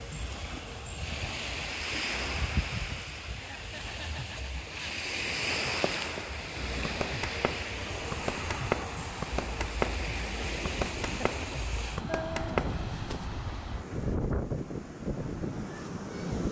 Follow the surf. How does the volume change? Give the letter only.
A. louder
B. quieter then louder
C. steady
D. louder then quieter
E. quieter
C.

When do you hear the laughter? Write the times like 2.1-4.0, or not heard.
3.4-5.0, 11.0-12.6.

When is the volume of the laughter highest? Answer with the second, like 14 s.
12 s.